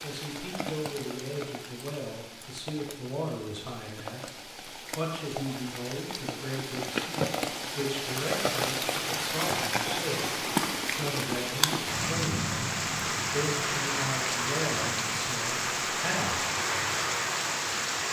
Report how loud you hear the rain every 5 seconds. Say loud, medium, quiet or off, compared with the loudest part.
quiet, loud, loud, loud.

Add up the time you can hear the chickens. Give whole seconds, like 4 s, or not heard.
not heard.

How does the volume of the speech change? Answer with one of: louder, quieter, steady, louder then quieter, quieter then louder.
steady.